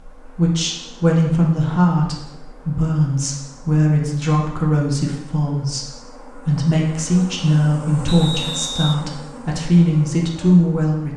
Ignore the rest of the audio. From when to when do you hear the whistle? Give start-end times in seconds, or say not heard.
8.1-9.0.